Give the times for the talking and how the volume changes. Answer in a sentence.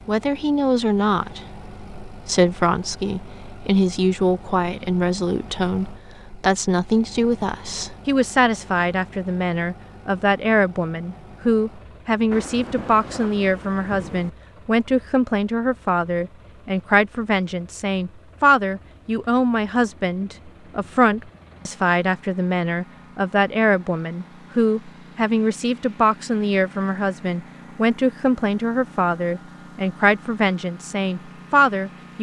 You can hear the talking from 0.1 to 32.1 s, at a steady volume.